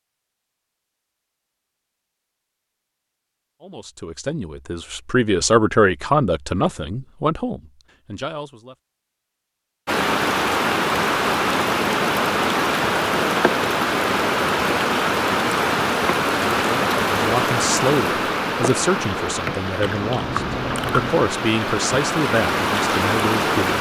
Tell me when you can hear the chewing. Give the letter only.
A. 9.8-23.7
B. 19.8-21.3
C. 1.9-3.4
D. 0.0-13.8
B.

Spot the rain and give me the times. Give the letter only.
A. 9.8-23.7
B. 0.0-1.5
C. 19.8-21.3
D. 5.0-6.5
A.